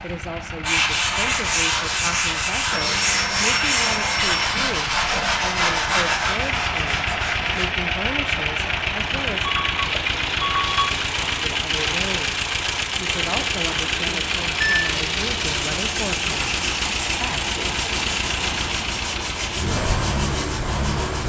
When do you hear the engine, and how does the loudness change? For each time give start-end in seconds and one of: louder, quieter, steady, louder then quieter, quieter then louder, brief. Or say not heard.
0.0-21.2 louder.